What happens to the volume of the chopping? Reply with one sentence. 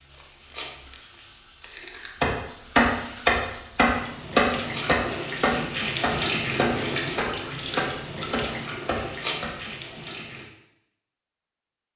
The volume of the chopping goes down.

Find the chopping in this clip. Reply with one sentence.
You can hear the chopping from 2.2 to 9.5 s.